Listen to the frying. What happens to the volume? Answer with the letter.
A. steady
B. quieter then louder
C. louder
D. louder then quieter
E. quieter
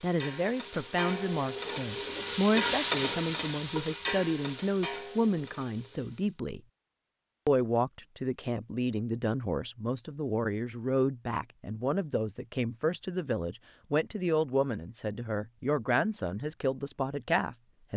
D.